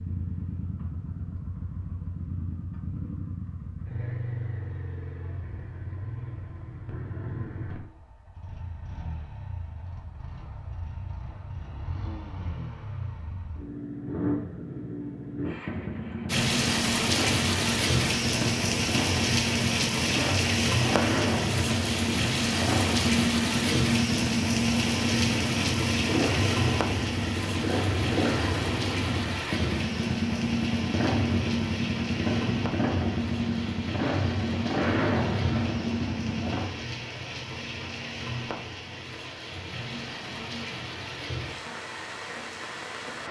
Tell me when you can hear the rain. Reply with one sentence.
The rain can be heard from 16.2 to 43.2 s.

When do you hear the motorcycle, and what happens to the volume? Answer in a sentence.
The motorcycle can be heard from 0.0 to 36.9 s, getting louder.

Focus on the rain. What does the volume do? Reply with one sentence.
The volume of the rain goes down.